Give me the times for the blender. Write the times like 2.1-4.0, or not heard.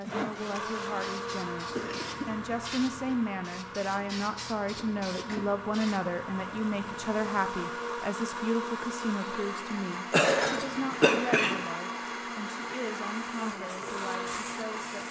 0.0-15.0.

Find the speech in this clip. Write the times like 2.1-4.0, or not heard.
0.0-15.0.